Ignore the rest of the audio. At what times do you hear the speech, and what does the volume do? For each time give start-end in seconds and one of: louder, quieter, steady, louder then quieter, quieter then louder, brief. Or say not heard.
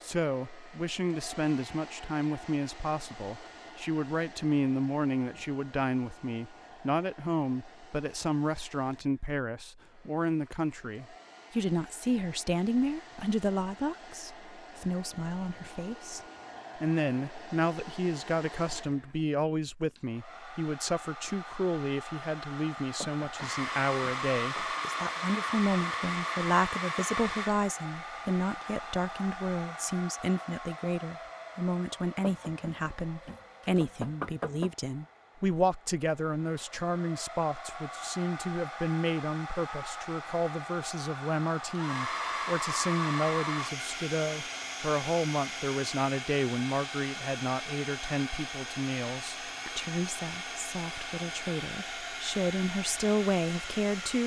0.0-54.2 steady.